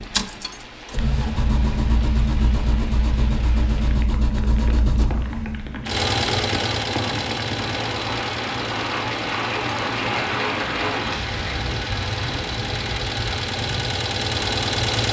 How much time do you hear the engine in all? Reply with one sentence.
The engine can be heard for 15 seconds in total.